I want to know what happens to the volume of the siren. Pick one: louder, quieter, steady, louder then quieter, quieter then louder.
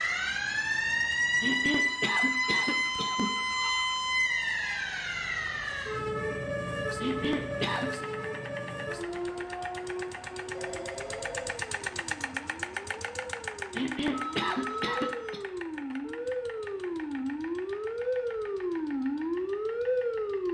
quieter then louder.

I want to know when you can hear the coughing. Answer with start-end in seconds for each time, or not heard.
1.4-3.4, 7.0-8.0, 13.8-15.4.